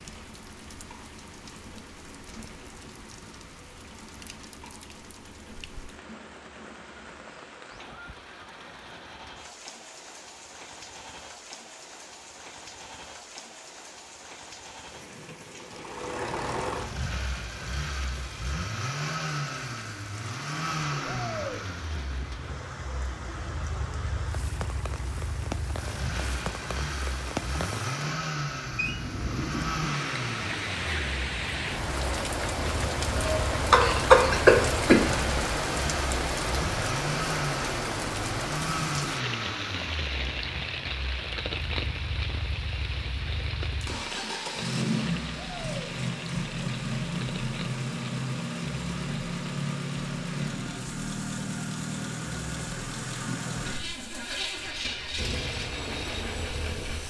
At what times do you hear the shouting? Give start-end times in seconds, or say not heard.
21.1-21.6, 45.4-46.0.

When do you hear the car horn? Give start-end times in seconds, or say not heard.
not heard.